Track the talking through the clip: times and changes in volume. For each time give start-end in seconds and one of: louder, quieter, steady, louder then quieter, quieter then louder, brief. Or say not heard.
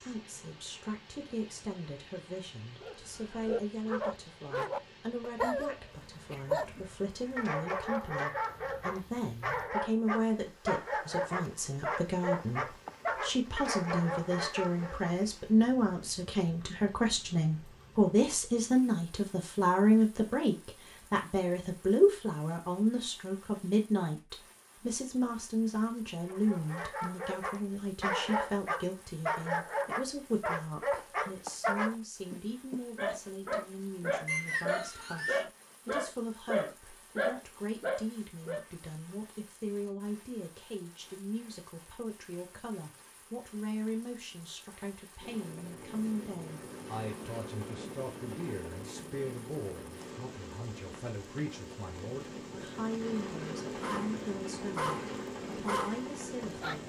0.0-56.8 louder then quieter.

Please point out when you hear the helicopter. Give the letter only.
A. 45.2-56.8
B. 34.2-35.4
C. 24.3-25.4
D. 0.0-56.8
A.